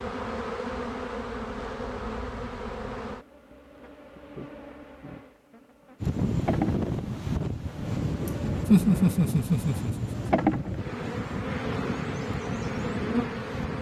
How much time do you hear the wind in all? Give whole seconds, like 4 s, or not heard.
8 s.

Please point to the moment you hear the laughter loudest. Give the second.
9 s.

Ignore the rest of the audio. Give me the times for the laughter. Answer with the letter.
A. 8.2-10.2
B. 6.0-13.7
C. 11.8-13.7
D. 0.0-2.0
A.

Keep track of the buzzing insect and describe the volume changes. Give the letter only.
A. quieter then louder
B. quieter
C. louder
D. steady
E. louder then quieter
A.